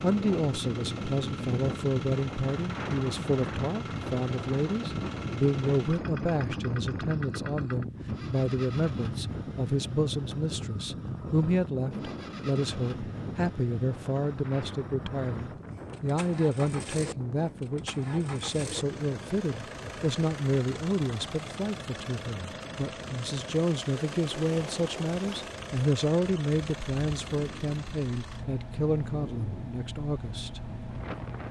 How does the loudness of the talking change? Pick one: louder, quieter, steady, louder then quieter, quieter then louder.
steady.